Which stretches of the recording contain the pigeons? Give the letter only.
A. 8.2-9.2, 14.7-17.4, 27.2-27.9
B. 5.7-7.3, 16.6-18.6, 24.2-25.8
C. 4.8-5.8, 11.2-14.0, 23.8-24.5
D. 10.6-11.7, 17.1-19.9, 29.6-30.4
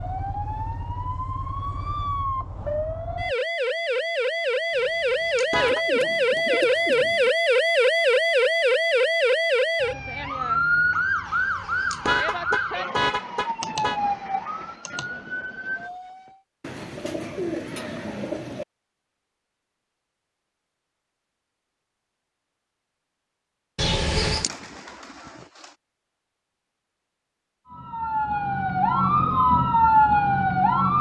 B.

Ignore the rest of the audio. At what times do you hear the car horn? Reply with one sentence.
You can hear the car horn from 4.8 to 5.8 s, from 11.2 to 14.0 s and from 23.8 to 24.5 s.